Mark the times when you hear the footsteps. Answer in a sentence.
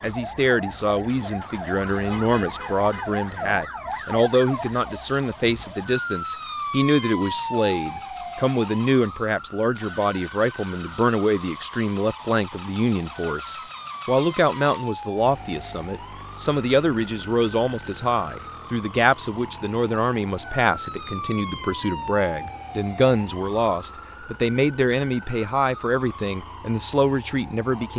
The footsteps can't be heard in this clip.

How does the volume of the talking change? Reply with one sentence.
The loudness of the talking stays about the same.